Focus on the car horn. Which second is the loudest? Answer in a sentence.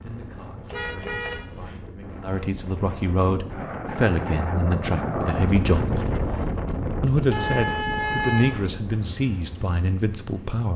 The volume of the car horn peaks at 8 seconds.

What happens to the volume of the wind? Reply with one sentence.
The loudness of the wind goes up, then down.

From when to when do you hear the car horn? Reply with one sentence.
You can hear the car horn from 0.7 to 1.8 s and from 7.3 to 8.6 s.